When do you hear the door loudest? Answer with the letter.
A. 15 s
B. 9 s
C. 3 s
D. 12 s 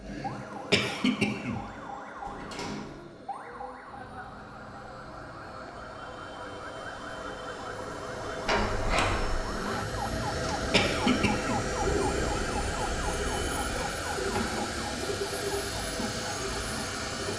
B.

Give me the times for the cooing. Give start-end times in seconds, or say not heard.
10.3-17.3.